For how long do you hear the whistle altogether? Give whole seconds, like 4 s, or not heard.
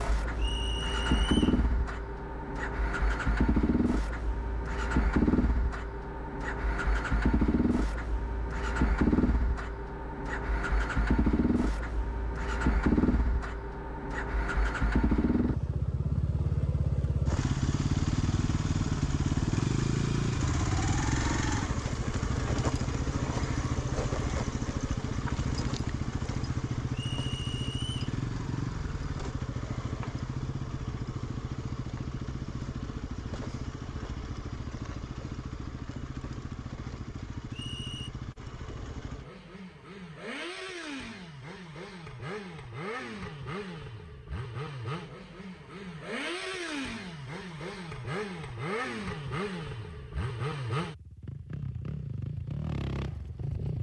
3 s.